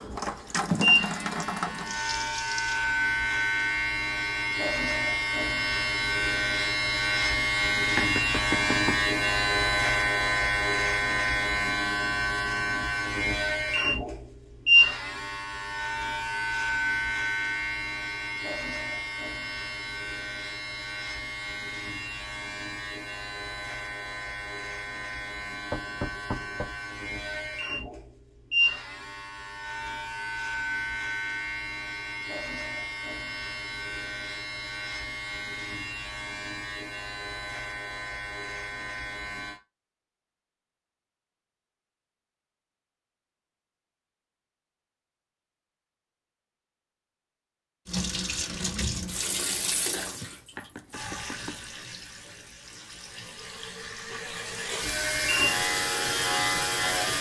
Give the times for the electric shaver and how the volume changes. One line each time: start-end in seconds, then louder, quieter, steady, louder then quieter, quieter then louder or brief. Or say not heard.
0.0-39.6 quieter
54.8-57.1 brief.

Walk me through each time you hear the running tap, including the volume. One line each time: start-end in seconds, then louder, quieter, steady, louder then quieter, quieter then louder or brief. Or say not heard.
0.0-2.8 brief
47.9-57.1 quieter then louder.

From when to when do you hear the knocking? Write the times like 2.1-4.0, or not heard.
8.0-9.1, 25.7-26.8, 50.5-51.8.